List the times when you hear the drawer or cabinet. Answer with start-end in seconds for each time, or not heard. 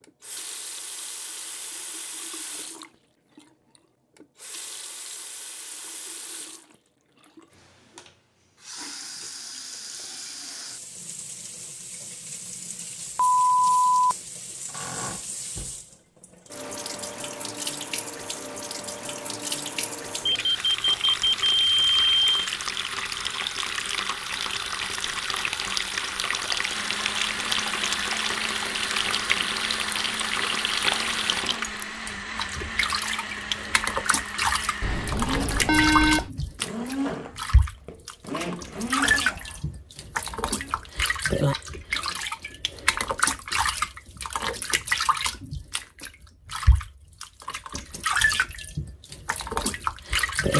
not heard.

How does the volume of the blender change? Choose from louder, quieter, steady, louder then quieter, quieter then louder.
quieter.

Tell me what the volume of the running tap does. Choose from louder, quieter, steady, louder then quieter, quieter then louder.
louder.